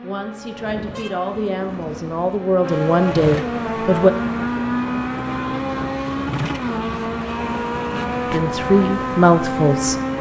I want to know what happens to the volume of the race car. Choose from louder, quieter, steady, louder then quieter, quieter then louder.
louder.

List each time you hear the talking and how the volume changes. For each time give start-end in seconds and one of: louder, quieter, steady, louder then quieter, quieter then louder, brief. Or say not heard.
0.0-4.1 louder
8.3-9.9 brief.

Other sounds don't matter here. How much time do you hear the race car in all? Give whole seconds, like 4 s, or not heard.
10 s.